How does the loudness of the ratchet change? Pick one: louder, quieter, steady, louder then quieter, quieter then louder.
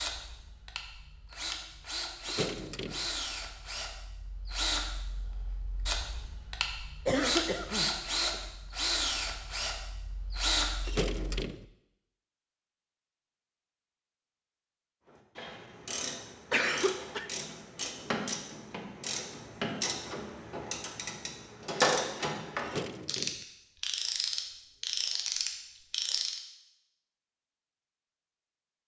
louder.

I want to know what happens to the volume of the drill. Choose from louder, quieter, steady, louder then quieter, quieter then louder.
louder.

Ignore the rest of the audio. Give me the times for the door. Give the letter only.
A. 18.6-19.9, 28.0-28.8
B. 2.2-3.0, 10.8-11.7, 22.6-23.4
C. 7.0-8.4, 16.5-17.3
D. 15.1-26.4
B.